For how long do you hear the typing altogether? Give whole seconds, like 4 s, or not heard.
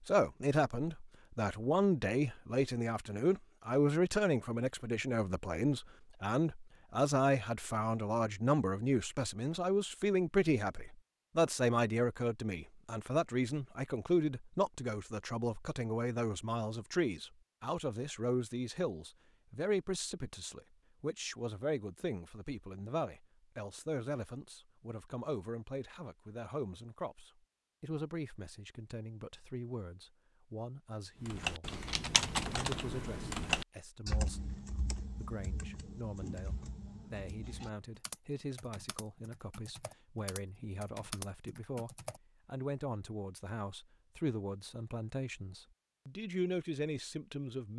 11 s.